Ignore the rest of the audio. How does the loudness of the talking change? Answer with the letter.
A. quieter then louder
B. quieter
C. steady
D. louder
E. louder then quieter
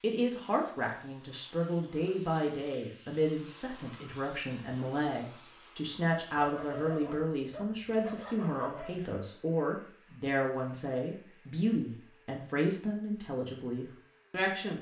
C.